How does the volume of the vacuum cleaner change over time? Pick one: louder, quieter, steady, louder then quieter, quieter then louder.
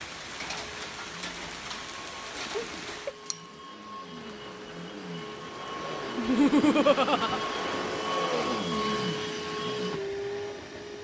louder.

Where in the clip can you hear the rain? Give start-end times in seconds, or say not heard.
0.0-8.1.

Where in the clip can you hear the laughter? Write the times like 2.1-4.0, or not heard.
2.5-3.1, 6.2-7.4.